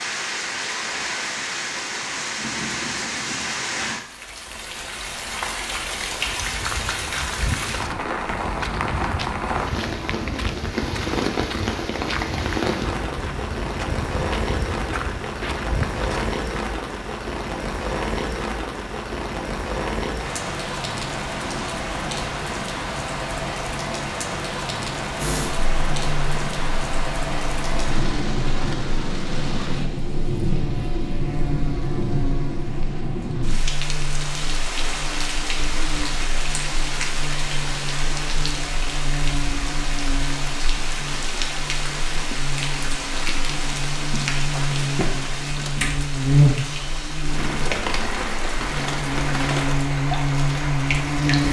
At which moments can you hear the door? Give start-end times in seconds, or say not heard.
not heard.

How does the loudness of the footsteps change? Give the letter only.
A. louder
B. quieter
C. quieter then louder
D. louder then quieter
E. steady
E.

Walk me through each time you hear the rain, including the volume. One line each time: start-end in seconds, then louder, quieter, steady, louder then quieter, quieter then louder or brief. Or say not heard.
0.0-51.4 steady.